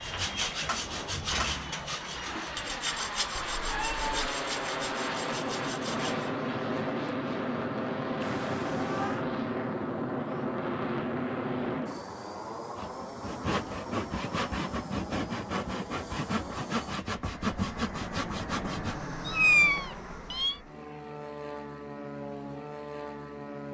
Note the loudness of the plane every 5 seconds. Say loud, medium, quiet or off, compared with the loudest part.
medium, loud, loud, medium, medium.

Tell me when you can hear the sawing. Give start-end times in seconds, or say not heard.
0.0-6.3, 12.8-19.1.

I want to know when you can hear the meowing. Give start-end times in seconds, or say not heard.
3.3-4.2, 8.2-9.2, 19.2-20.6.